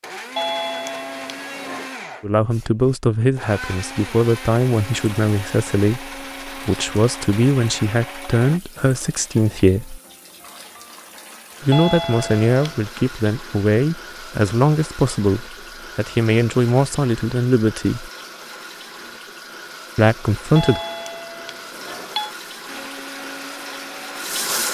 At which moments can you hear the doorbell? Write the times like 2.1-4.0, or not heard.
0.3-1.9, 11.7-12.8, 20.6-22.3.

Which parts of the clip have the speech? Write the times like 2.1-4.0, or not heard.
2.2-10.0, 11.6-18.1, 19.9-20.8.